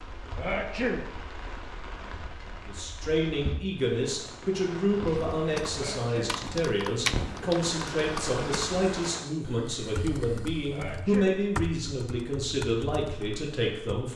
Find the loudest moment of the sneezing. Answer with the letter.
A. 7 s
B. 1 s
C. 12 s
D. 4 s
B.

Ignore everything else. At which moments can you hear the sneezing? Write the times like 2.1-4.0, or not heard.
0.3-1.1, 5.7-6.4, 10.7-11.3.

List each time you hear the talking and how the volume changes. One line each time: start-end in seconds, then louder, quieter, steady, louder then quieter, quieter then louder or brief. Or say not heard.
2.6-14.1 steady.